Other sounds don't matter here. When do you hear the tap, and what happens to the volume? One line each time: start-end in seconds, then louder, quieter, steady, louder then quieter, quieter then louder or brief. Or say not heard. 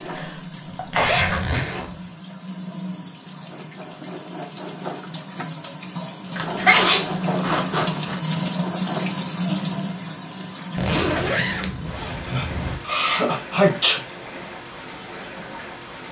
0.0-16.0 louder then quieter.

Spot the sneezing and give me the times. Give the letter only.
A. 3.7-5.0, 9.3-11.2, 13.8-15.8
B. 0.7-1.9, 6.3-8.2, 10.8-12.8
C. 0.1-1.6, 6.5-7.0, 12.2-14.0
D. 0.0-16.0
C.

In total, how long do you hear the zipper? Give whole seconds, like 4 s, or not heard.
5 s.